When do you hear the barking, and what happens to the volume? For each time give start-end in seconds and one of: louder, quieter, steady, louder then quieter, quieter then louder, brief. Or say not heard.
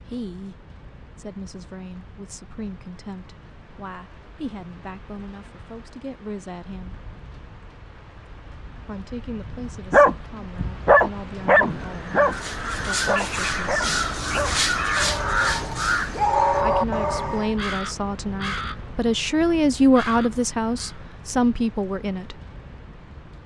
9.9-17.6 quieter then louder.